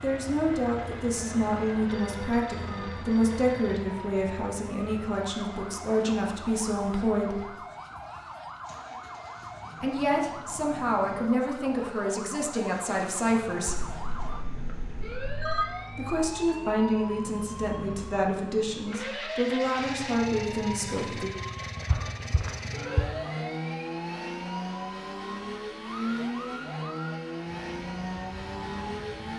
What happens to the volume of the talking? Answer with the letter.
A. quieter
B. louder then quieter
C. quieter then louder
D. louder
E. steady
E.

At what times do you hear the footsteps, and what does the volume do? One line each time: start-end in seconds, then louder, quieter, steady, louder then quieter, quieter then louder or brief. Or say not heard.
not heard.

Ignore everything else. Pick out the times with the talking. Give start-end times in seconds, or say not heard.
0.0-7.5, 9.8-13.8, 15.9-21.3.